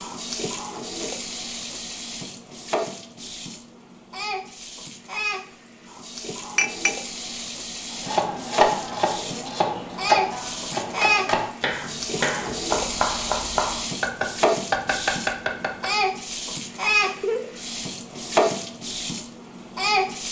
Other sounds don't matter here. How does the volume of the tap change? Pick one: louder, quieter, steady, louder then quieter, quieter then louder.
louder.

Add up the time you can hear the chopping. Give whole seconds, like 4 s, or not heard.
8 s.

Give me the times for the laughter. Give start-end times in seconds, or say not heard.
17.1-17.5.